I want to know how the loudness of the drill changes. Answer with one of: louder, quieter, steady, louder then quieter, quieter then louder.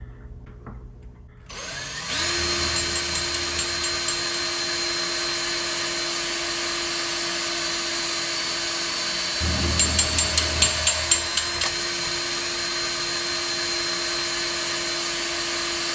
steady.